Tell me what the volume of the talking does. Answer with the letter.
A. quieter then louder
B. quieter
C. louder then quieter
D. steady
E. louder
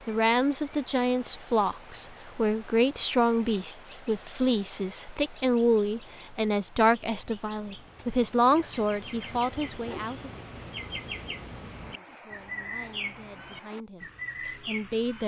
B.